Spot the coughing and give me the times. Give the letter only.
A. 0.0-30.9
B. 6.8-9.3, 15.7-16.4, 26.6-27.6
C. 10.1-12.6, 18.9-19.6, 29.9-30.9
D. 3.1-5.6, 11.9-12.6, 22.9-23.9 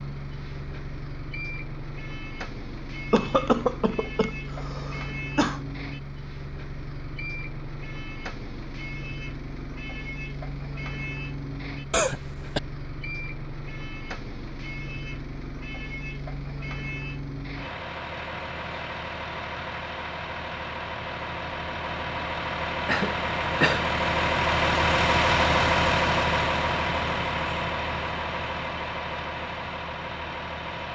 D.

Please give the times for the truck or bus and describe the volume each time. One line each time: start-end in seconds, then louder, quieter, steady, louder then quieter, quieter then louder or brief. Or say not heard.
0.0-30.9 louder.